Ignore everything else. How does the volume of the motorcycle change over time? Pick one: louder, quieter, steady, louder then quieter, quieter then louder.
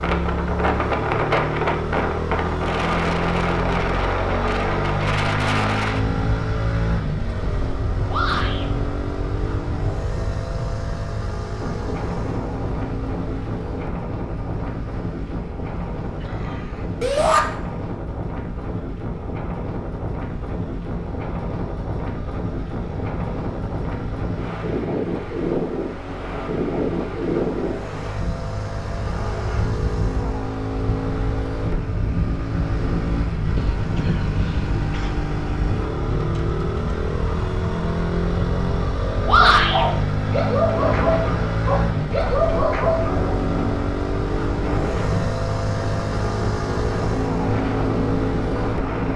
quieter then louder.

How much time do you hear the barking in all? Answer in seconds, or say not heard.
4 s.